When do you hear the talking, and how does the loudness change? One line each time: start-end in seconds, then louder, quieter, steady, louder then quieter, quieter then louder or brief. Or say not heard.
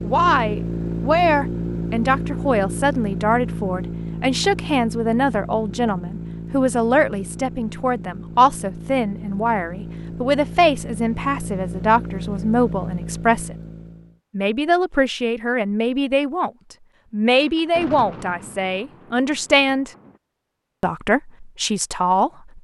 0.0-13.6 steady
14.3-16.5 brief
17.1-19.9 brief
20.8-22.5 brief.